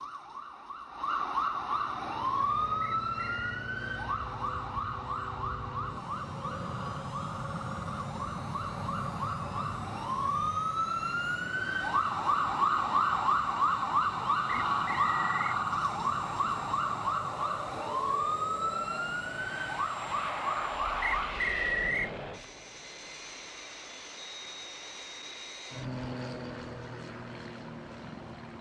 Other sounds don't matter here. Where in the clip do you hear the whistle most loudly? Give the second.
22 s.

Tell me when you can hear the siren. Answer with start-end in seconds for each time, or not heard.
0.0-21.5.